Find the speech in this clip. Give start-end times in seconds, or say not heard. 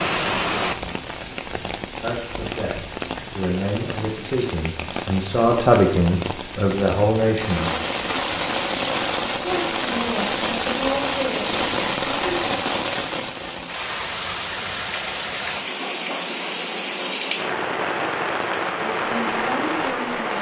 2.0-7.7, 9.3-12.6, 18.8-20.3.